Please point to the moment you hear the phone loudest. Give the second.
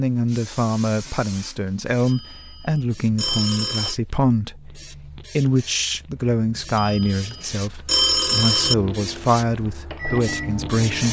8 s.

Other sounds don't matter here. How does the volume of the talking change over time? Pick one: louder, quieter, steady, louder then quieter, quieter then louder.
steady.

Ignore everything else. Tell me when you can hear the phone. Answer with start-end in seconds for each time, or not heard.
2.0-4.0, 6.8-8.8.